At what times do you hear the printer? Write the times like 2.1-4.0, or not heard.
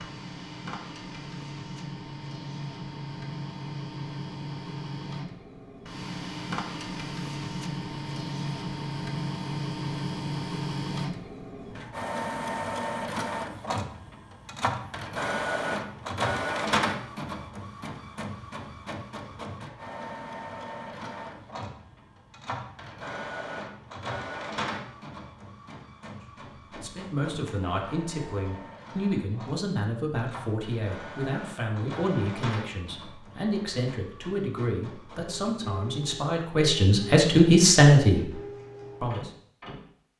0.0-39.9.